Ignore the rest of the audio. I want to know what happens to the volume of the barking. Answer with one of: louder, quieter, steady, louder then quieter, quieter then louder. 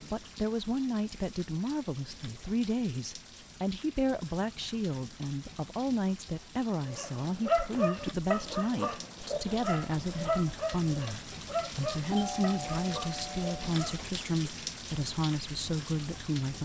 quieter.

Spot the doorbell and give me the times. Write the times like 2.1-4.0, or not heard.
12.1-13.6.